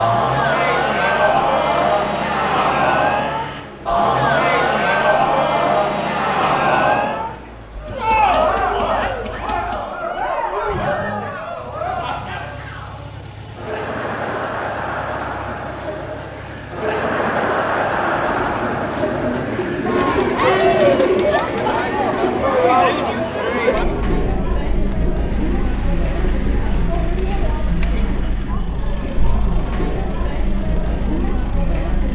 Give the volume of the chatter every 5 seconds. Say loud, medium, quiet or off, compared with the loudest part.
loud, loud, medium, medium, loud, medium, medium.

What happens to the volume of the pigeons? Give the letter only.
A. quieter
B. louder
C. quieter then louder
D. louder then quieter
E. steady
D.